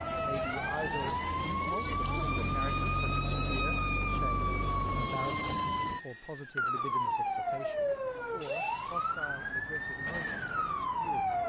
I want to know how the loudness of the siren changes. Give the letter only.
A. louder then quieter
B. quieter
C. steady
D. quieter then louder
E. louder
C.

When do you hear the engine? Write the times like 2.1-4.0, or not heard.
1.9-5.1.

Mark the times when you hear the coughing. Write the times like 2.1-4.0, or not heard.
not heard.